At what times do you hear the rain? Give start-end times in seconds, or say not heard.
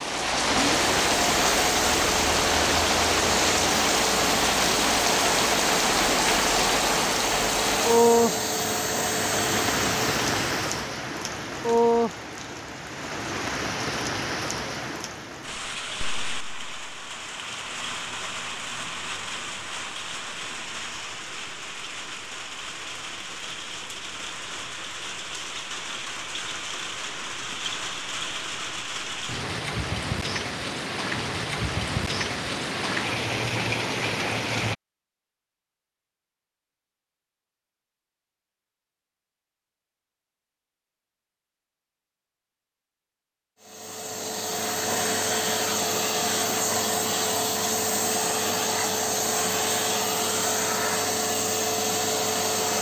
0.0-34.8.